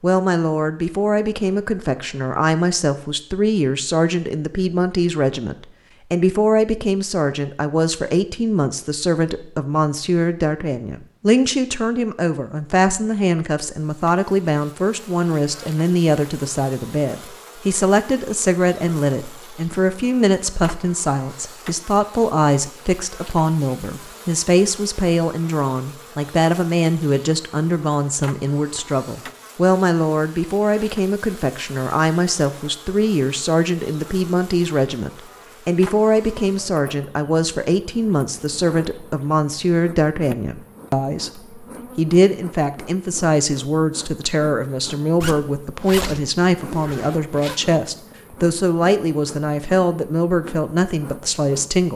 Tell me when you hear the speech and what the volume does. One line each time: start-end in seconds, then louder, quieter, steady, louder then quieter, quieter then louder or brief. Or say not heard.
0.0-51.9 steady.